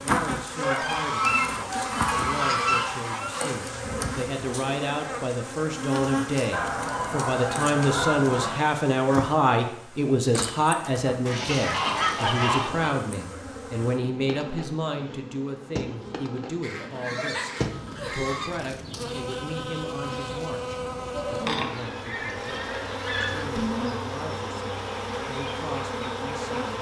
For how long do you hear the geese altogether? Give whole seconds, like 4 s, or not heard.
11 s.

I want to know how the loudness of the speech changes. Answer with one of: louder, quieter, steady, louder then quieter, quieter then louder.
louder then quieter.